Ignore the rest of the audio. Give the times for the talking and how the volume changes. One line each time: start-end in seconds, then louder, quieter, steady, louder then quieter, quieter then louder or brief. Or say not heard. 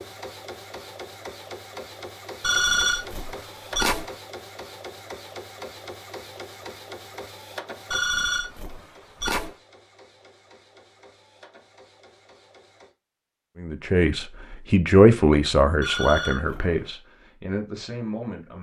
13.6-18.5 louder then quieter.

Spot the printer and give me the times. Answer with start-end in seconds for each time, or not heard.
0.0-12.9.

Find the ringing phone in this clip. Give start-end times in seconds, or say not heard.
2.4-4.1, 7.9-9.6, 15.8-16.8.